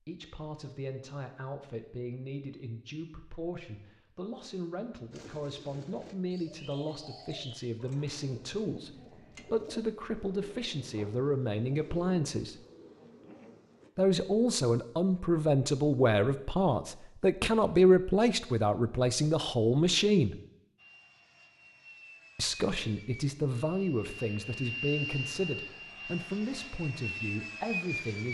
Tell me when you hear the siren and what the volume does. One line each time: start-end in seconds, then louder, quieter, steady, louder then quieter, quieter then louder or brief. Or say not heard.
not heard.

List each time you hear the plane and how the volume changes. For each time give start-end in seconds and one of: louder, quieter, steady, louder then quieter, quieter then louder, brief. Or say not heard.
20.8-28.2 louder.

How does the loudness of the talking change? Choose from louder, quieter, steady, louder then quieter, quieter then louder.
louder then quieter.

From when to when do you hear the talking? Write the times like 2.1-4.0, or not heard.
0.1-12.6, 13.9-20.4, 22.4-28.2.